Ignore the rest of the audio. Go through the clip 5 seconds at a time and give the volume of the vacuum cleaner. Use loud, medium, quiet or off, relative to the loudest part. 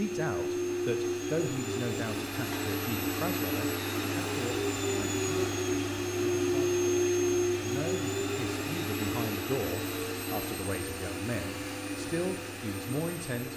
loud, loud, medium.